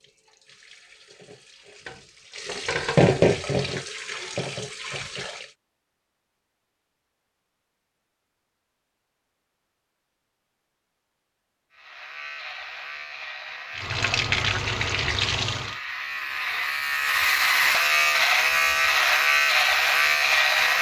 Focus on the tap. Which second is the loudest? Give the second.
3 s.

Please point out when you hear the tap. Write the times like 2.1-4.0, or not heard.
0.0-5.5, 13.8-15.8.